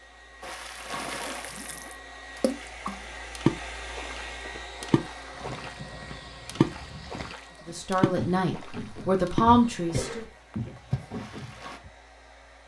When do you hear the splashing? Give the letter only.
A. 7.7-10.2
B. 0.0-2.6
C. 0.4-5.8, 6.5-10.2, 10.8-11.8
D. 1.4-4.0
C.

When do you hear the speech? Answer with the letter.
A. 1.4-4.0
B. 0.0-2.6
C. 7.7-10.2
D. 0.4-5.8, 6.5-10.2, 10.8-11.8
C.